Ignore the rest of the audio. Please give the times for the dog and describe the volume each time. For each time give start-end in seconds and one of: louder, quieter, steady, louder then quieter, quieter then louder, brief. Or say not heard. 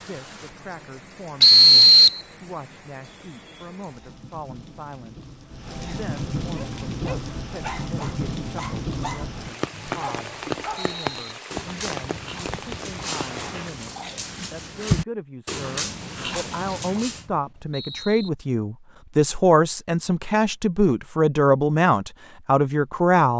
6.5-17.2 louder.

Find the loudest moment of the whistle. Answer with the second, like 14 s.
2 s.